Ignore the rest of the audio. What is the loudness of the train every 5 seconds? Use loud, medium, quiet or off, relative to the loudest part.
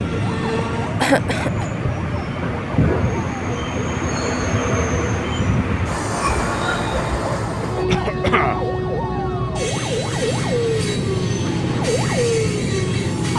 loud, loud, medium.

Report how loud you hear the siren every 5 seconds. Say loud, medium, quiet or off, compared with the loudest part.
medium, medium, loud.